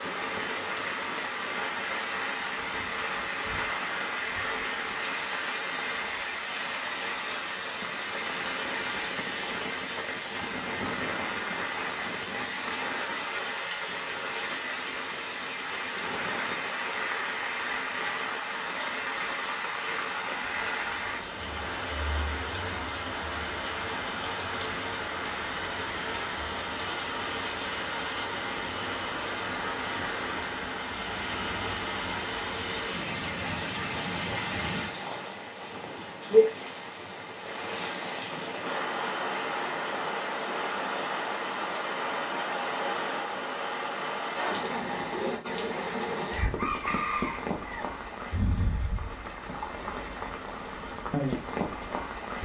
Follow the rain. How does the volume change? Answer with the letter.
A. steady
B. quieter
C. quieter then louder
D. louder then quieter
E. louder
A.